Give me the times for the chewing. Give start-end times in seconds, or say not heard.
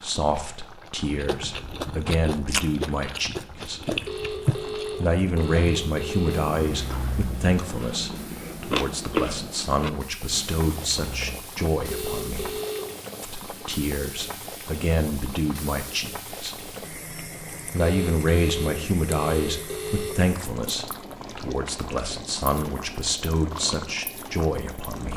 1.1-11.4.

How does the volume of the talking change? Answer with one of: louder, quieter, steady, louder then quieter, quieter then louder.
steady.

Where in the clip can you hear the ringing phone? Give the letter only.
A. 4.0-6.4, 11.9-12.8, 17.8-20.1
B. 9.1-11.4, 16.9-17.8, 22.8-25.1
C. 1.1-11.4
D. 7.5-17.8
A.